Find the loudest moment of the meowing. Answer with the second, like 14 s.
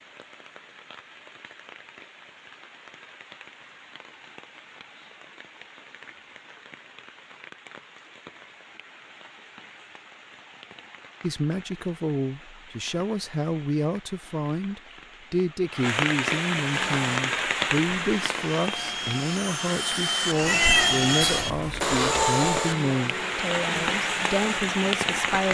21 s.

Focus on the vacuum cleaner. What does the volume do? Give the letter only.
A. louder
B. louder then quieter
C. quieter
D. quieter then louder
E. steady
B.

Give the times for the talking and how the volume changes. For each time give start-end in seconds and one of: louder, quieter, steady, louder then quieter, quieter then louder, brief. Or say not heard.
11.2-25.5 steady.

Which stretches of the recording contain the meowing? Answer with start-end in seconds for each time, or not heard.
20.4-22.2.